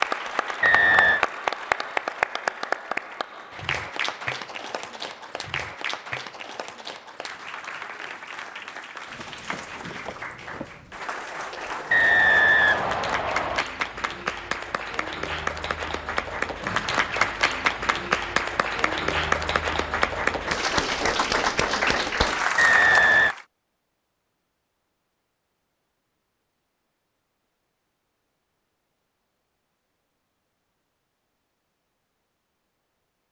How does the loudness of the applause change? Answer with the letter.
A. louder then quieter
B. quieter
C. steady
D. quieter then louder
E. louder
D.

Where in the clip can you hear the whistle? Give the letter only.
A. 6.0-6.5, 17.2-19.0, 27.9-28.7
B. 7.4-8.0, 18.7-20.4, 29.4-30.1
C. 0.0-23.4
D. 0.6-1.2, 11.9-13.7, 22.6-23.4
D.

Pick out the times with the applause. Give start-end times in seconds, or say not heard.
0.0-23.4.